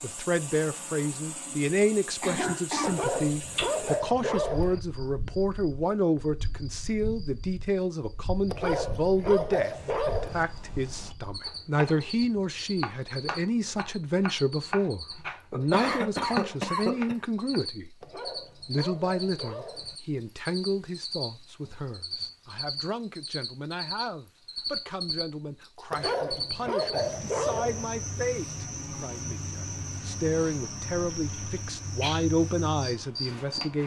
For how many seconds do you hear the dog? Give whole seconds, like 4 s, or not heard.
8 s.